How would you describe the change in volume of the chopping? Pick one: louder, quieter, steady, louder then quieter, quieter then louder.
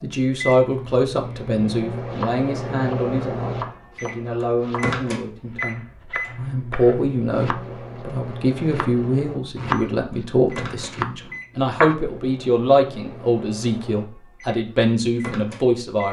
louder.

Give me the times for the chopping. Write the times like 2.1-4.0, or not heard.
1.9-11.9.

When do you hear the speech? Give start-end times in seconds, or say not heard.
0.0-16.0.